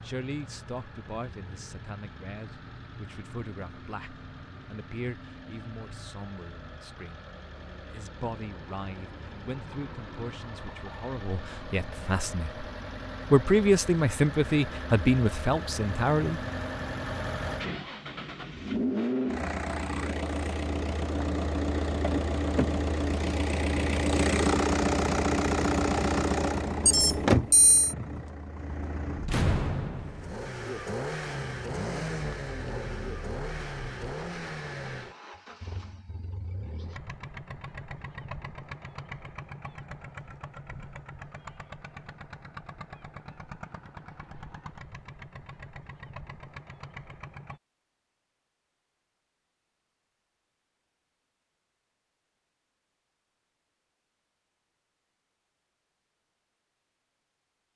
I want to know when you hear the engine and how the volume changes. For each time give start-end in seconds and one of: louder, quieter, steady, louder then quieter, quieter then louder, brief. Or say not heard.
0.0-47.6 louder then quieter.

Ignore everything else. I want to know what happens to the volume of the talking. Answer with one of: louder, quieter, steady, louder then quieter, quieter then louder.
louder.